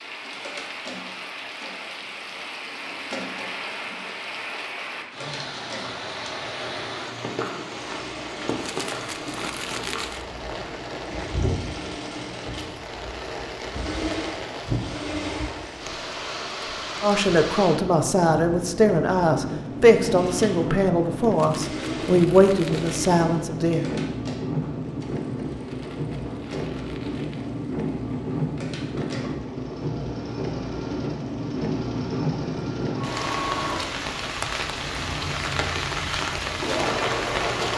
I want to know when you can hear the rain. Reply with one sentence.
The rain can be heard from 0.0 to 37.7 s.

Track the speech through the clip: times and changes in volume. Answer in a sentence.
The speech can be heard from 17.0 to 23.9 s, at a steady volume.